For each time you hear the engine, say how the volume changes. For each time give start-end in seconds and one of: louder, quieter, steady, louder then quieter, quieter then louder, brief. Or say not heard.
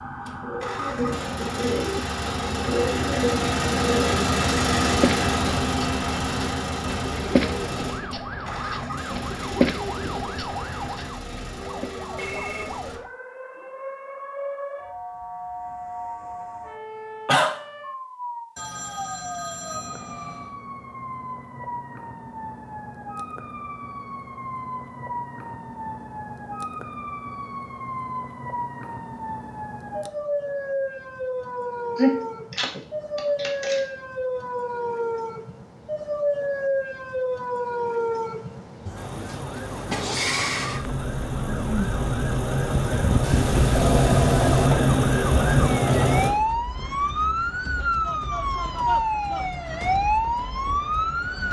0.0-13.0 louder then quieter
39.0-46.3 louder.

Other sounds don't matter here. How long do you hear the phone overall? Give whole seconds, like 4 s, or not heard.
4 s.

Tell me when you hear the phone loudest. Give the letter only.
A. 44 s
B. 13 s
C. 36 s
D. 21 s
A.